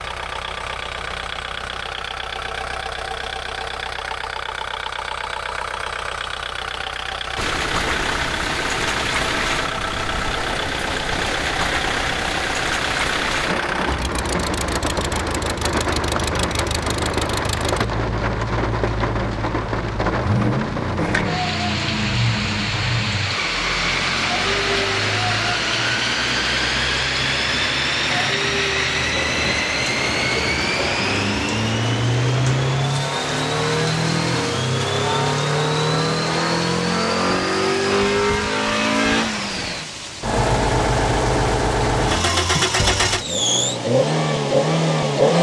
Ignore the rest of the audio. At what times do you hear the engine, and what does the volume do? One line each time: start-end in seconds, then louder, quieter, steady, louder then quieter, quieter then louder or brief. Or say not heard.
0.0-45.3 louder.